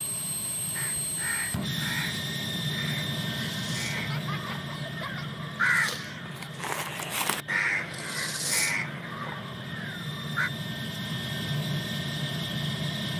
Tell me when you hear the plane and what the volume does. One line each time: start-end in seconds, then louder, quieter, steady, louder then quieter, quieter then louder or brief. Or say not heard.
0.0-13.1 quieter then louder.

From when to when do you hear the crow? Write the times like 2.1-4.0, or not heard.
0.7-10.5.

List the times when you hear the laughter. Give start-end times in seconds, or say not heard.
4.0-5.3.